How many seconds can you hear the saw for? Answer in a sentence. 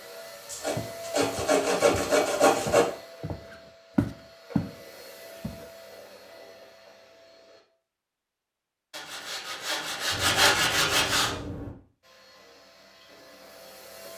The saw can be heard for 5 seconds in total.